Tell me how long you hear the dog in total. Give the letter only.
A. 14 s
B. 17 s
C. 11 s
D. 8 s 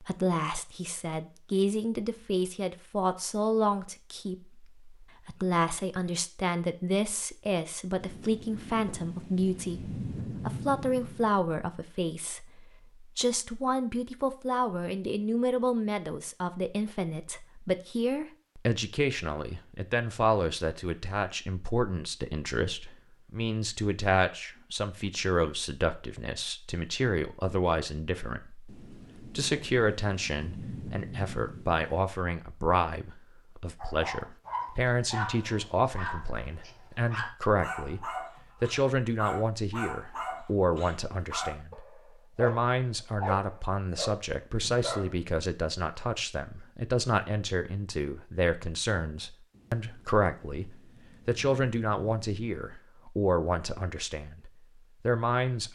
C.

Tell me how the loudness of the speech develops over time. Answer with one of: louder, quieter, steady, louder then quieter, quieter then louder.
steady.